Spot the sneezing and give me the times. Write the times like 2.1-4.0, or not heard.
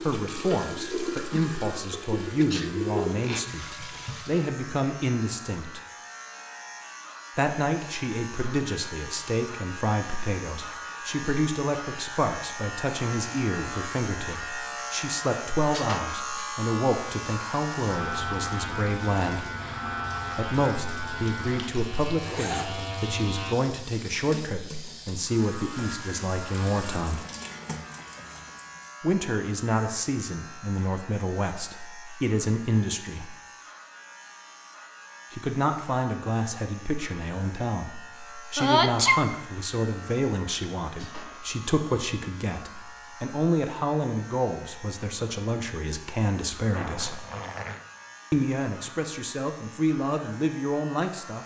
2.2-2.7, 38.5-39.3.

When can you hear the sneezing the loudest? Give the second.
39 s.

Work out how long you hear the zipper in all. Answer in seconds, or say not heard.
3 s.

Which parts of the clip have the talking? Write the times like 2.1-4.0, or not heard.
0.0-5.8, 7.3-19.5, 20.4-27.2, 29.0-33.3, 35.3-47.2, 48.3-51.4.